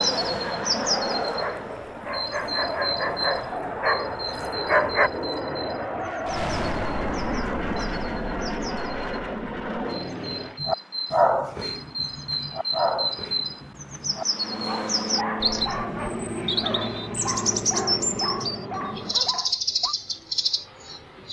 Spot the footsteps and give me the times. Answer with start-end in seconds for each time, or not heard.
not heard.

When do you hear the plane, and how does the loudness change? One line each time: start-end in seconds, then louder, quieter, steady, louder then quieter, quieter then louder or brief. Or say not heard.
0.0-10.6 steady
14.3-21.2 quieter.